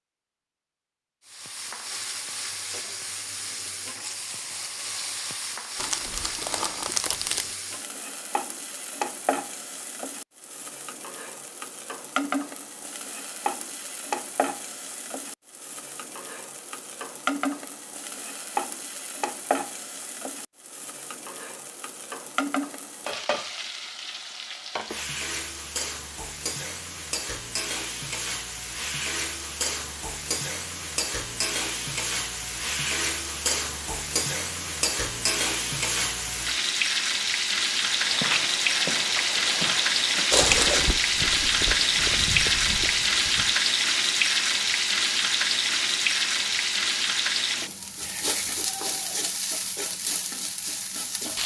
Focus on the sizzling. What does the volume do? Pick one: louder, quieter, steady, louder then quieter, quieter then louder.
louder.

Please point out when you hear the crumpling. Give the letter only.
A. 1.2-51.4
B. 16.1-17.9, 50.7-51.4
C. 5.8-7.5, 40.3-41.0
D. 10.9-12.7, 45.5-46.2
C.